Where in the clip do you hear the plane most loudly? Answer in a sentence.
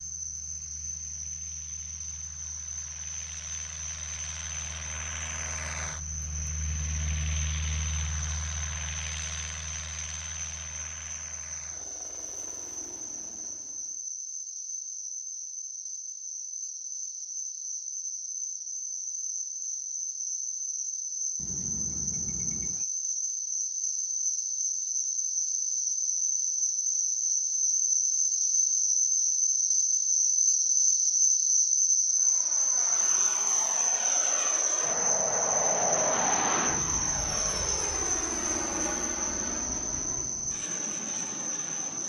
The loudest moment of the plane is at 36 seconds.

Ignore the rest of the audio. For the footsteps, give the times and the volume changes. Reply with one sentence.
The footsteps can't be heard in this clip.